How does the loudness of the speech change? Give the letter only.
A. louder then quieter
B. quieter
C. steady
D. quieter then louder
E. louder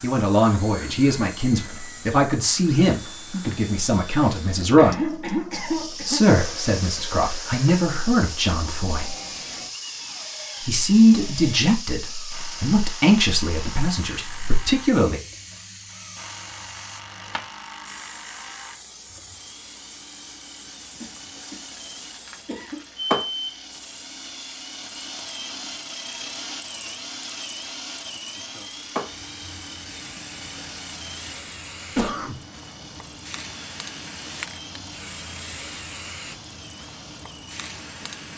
C.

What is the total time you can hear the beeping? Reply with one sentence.
The beeping can be heard for 2 seconds in total.